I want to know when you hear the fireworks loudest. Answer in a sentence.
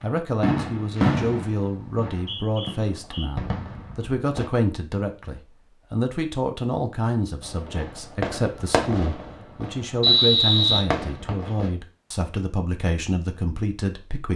The volume of the fireworks peaks at 1 second.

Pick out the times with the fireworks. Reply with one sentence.
You can hear the fireworks from 0.0 to 4.5 s and from 7.4 to 11.7 s.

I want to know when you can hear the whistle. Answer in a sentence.
The whistle can be heard from 2.1 to 3.3 s and from 10.0 to 11.5 s.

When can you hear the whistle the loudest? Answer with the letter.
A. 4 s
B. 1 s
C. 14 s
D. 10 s
D.